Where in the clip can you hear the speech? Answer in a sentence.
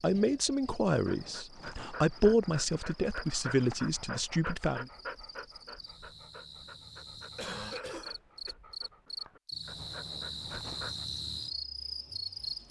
You can hear the speech from 0.0 to 4.8 s.